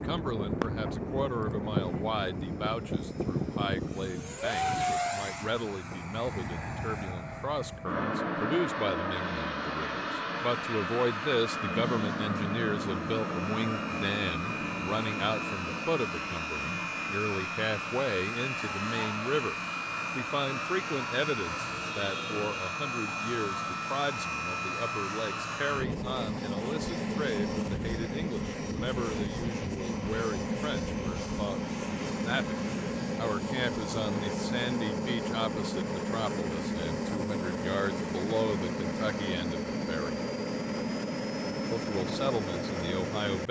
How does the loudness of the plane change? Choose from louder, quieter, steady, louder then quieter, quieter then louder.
steady.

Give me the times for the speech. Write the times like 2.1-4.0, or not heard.
0.0-19.6, 20.1-32.5, 33.1-40.2, 41.7-43.4.